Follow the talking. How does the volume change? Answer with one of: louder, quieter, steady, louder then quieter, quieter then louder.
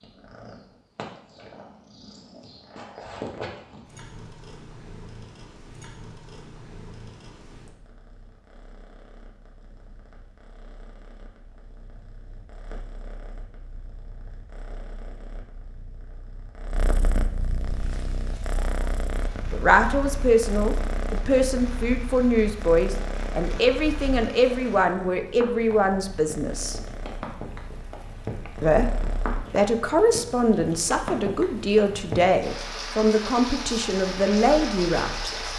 steady.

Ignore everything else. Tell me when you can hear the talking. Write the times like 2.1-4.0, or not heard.
19.5-26.8, 28.6-35.5.